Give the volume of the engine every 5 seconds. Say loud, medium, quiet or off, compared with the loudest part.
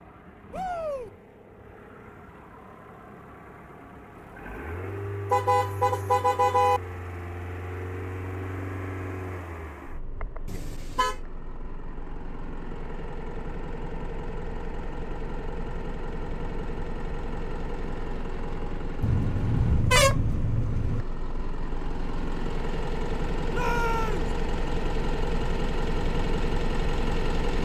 quiet, medium, medium, medium, loud, loud.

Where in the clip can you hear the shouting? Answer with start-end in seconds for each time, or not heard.
0.5-1.1, 23.5-24.3.